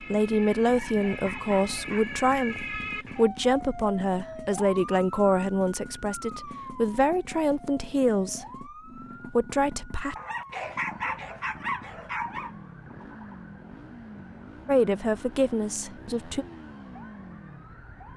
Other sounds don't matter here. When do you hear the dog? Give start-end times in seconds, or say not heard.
0.7-2.0, 10.2-12.6.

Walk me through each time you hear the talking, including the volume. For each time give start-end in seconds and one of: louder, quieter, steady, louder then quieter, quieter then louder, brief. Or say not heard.
0.0-8.7 steady
9.3-10.2 brief
14.7-16.4 brief.